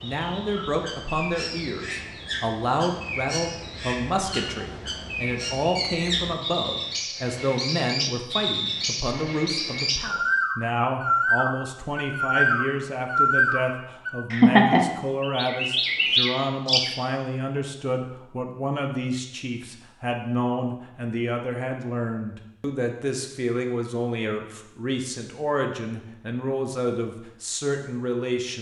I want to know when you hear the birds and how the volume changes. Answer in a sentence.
You can hear the birds from 0.0 to 16.9 s, getting louder.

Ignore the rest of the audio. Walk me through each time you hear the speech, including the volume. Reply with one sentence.
The speech can be heard from 0.0 to 28.5 s, at a steady volume.